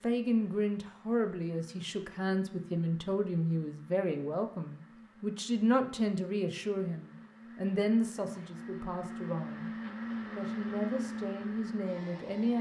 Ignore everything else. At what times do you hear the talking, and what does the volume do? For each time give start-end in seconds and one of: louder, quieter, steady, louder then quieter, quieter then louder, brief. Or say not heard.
0.0-9.7 steady
10.3-12.5 brief.